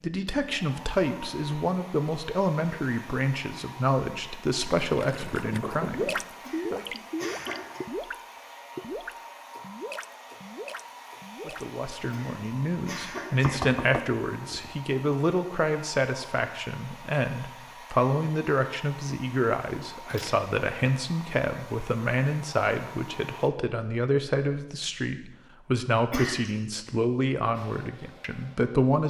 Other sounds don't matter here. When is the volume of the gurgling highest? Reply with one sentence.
The volume of the gurgling peaks at 6 seconds.